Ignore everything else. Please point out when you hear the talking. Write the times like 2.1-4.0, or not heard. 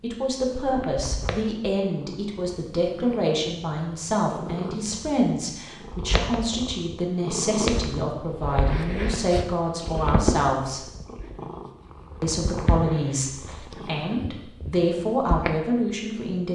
0.0-10.9, 12.2-16.4.